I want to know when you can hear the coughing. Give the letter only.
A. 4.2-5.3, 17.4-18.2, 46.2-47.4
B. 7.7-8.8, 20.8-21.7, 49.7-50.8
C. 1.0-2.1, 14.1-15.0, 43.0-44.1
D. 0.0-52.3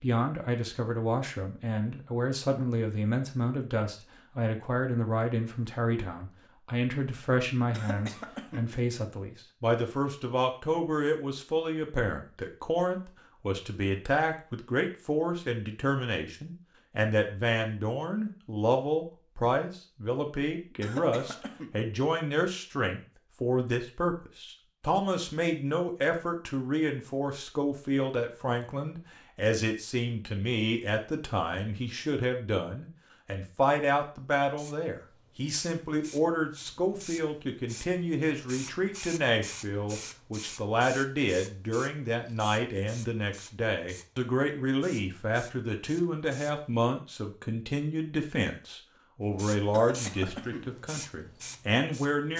B.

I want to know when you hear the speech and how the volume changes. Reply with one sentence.
You can hear the speech from 0.0 to 52.3 s, at a steady volume.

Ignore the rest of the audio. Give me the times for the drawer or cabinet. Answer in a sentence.
The drawer or cabinet can't be heard in this clip.